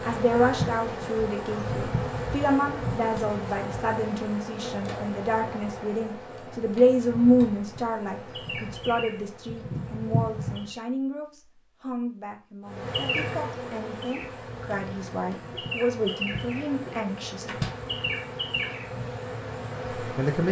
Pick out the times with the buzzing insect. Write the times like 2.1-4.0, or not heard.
0.0-10.8, 12.7-20.4.